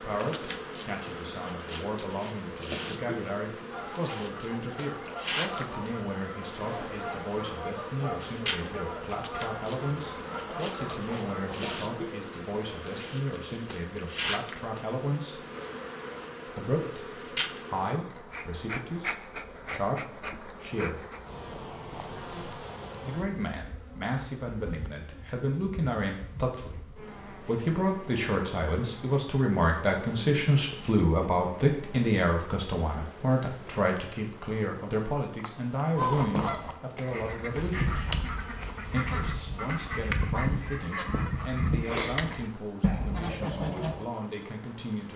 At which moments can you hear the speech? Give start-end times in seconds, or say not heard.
0.0-15.4, 16.4-21.1, 23.0-38.1, 38.9-45.1.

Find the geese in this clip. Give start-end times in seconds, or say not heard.
3.7-11.8, 35.9-44.0.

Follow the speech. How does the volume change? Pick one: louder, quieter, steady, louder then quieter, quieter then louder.
louder then quieter.